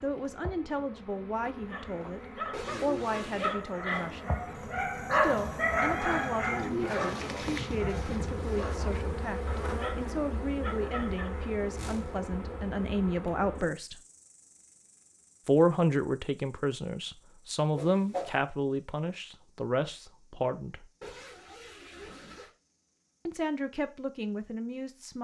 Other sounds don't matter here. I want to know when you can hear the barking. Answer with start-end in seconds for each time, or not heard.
1.6-11.6.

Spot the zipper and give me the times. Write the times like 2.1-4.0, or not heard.
2.5-3.5, 21.0-22.5.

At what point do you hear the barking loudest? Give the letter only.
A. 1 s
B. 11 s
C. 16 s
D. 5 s
D.